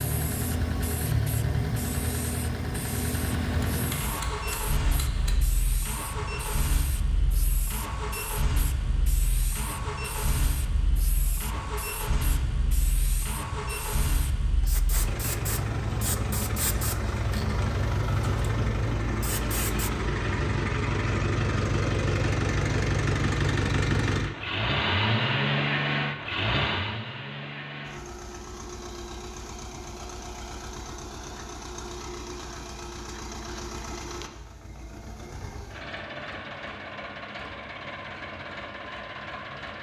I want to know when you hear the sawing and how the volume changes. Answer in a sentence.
You can't hear the sawing here.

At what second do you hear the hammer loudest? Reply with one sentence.
The volume of the hammer peaks at 4 seconds.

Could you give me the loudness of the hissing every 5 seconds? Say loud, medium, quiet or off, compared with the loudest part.
loud, loud, loud, loud, off, off, off, off.